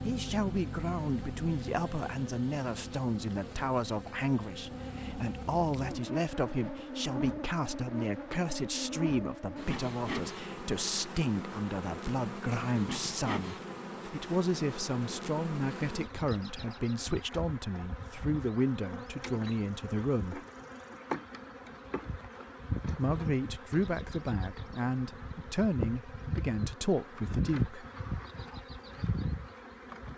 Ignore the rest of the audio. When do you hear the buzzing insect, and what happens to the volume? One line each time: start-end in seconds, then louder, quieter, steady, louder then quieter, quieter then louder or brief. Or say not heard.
0.0-30.1 steady.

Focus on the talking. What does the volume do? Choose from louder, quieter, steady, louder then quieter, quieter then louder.
steady.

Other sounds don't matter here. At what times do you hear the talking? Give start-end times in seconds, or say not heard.
0.0-20.4, 22.9-27.9.